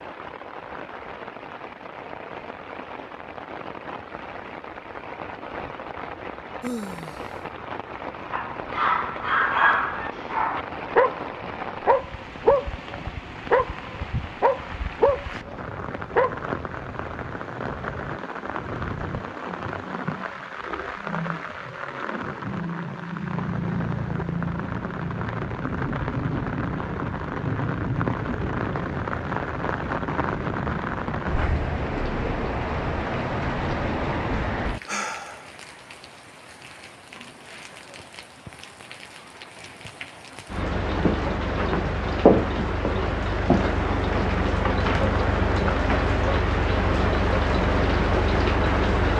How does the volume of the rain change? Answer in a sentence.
The volume of the rain goes up.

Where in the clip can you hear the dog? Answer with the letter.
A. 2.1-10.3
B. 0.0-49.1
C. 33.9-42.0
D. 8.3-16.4
D.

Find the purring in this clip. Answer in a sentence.
You can't hear the purring here.